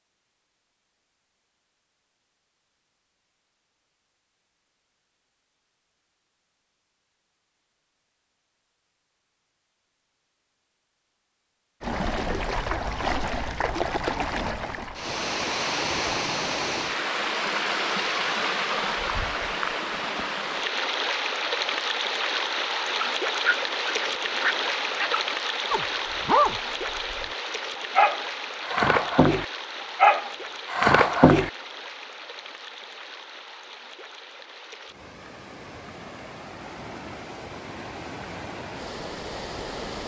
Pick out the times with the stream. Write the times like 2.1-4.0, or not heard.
11.8-40.0.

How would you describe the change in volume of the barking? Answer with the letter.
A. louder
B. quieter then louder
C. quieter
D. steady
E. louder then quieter
A.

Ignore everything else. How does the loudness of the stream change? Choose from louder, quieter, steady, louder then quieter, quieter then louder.
quieter.